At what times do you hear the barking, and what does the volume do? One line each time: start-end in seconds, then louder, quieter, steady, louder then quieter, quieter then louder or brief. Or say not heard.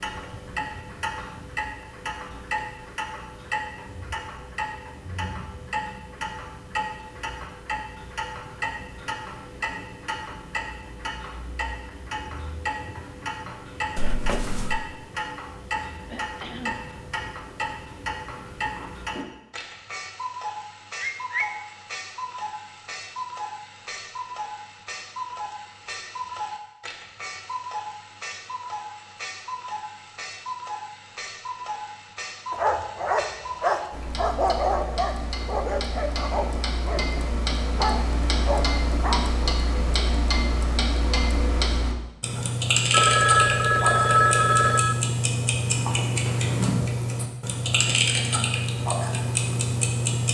32.5-39.4 quieter then louder.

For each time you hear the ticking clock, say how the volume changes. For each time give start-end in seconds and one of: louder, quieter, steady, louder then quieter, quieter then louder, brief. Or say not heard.
0.0-50.2 louder.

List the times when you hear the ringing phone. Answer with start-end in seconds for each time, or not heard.
13.9-14.8, 21.0-21.4, 42.9-45.0.